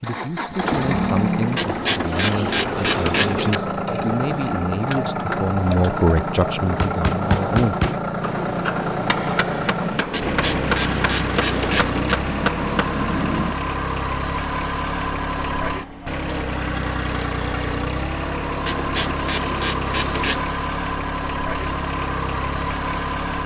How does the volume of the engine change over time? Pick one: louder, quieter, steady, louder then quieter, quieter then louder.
steady.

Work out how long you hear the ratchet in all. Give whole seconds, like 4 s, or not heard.
6 s.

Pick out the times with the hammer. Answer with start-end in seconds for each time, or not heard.
6.8-13.6.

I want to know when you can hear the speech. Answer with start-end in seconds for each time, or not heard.
0.0-7.9.